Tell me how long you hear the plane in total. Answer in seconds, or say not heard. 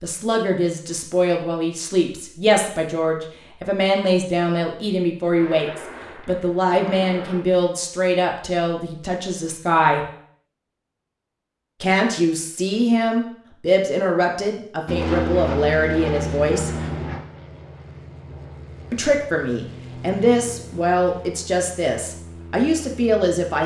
9 s.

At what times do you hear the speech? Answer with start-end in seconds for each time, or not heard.
0.0-10.1, 11.8-16.7, 18.9-23.6.